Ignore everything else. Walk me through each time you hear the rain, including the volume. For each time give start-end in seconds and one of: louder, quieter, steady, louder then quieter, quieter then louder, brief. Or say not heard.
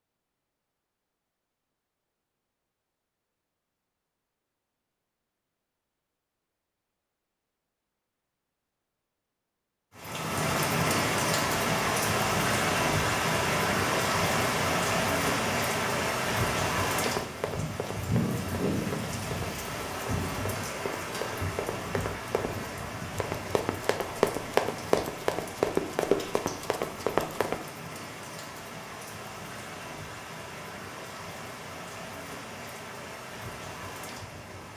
9.9-34.7 quieter.